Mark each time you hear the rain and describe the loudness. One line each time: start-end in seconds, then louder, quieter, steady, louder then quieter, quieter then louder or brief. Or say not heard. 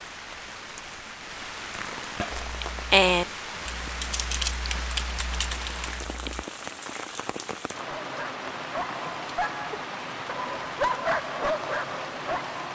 0.0-12.7 steady.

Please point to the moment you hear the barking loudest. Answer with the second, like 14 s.
11 s.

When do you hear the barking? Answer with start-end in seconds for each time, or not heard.
8.0-12.7.